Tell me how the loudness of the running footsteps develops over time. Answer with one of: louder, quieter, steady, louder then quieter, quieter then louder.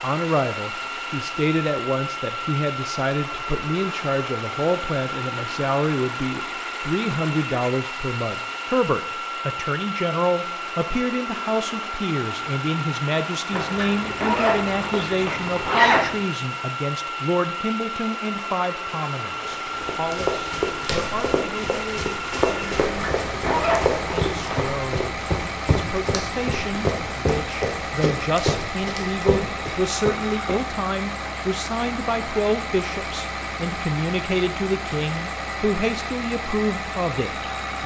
steady.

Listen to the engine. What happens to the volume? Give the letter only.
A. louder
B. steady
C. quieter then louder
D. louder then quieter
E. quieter
B.